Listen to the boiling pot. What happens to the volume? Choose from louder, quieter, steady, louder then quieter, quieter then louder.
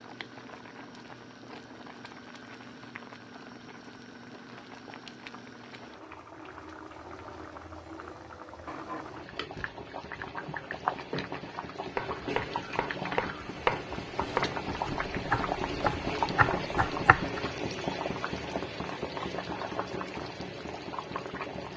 louder.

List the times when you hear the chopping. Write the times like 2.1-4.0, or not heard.
9.3-17.4.